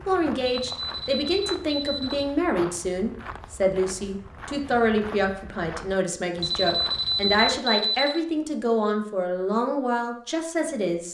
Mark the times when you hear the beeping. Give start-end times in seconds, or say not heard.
0.6-2.3, 6.4-8.2.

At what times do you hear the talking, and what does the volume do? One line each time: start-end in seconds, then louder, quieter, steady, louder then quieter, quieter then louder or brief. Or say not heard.
0.1-11.0 steady.